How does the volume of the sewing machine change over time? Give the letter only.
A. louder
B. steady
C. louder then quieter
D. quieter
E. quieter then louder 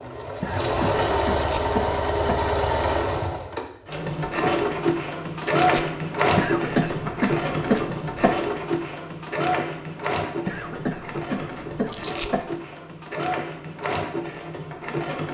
D.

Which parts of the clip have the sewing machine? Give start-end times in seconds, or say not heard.
0.0-15.2.